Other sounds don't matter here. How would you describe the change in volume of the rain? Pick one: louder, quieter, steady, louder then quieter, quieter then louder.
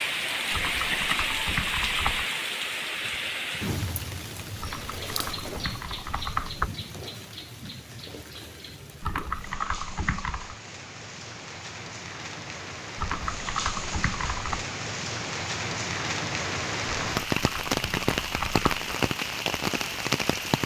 quieter then louder.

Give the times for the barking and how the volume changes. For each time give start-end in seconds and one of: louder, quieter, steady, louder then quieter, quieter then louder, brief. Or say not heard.
not heard.